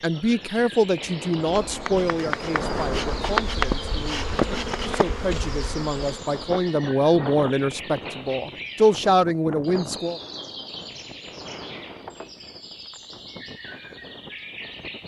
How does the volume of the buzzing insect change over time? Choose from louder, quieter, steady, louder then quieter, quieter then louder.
louder then quieter.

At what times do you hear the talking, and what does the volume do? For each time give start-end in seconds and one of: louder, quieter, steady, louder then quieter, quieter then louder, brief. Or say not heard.
0.0-10.2 quieter then louder.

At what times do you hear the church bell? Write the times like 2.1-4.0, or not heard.
not heard.